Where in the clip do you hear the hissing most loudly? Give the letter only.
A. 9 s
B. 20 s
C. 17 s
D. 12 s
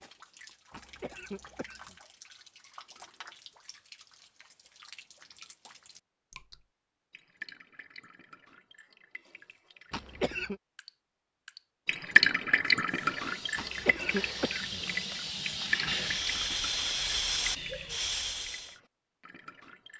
C.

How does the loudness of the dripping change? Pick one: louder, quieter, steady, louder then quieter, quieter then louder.
louder then quieter.